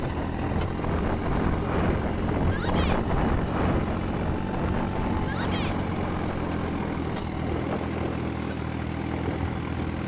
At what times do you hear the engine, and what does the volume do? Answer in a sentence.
You can hear the engine from 0.0 to 10.0 s, at a steady volume.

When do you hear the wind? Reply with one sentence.
You can hear the wind from 0.0 to 10.0 s.